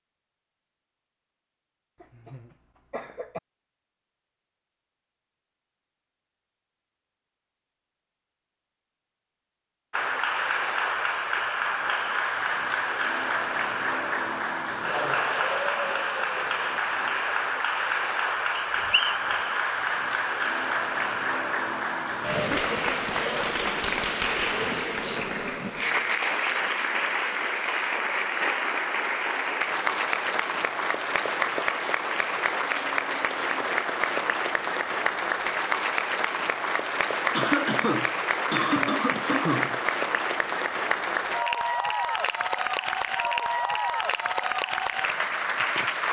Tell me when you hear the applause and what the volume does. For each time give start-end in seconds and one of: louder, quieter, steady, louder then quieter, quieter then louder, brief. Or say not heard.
9.9-46.0 steady.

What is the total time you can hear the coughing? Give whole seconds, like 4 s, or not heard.
4 s.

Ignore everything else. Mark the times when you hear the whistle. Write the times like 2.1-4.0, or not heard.
18.6-19.3.